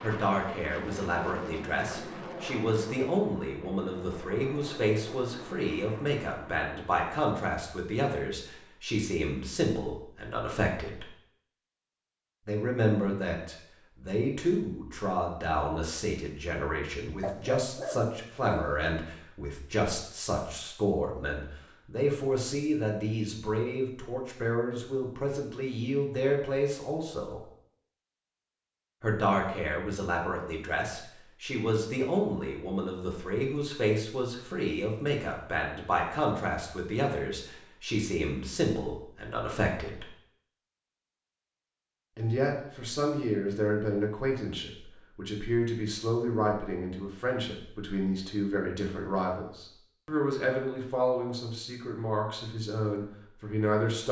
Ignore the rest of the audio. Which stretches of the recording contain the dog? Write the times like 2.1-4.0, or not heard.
17.2-18.8.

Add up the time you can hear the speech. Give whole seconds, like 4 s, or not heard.
49 s.